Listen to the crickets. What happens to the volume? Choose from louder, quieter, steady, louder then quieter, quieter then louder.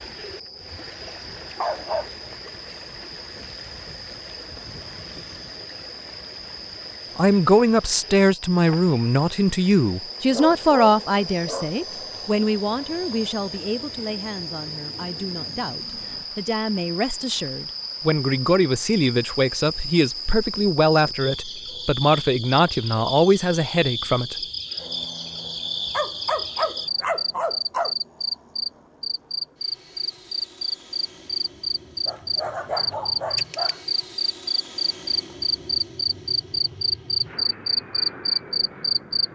louder.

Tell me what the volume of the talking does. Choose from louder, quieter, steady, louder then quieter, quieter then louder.
quieter then louder.